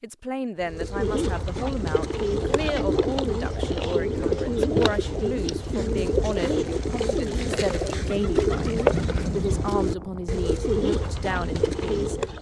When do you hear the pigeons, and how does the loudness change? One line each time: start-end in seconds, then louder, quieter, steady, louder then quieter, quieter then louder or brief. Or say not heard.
0.6-12.3 steady.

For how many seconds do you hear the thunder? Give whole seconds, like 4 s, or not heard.
2 s.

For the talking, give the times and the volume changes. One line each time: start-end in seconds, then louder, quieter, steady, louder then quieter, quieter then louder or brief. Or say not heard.
0.0-12.2 steady.